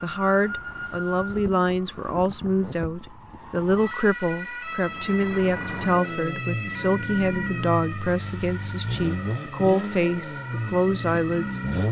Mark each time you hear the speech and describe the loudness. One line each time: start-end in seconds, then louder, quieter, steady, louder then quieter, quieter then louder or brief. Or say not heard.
0.0-11.6 steady.